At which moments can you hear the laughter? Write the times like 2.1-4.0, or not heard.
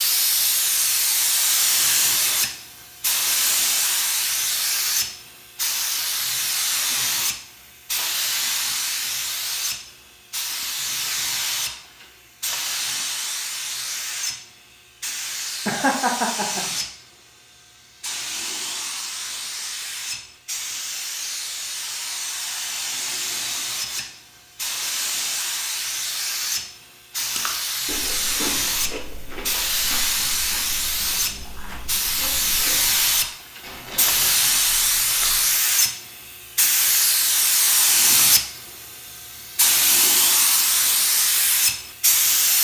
15.7-16.6.